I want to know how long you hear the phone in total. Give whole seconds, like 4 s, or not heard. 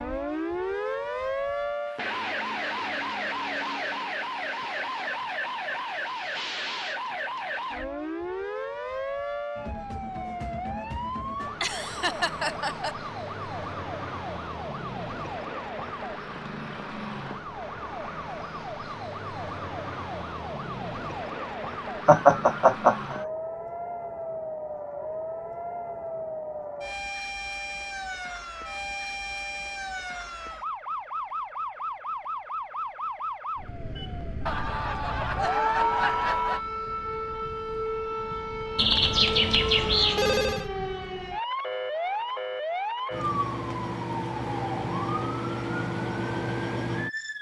2 s.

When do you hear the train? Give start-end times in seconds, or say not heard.
not heard.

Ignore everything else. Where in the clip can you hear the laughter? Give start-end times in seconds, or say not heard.
11.6-12.9, 22.1-23.1, 34.5-36.6.